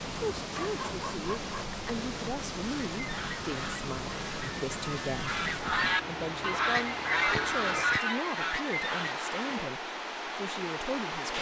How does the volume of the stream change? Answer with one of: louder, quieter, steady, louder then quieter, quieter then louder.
steady.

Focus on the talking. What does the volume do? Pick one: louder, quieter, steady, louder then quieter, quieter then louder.
steady.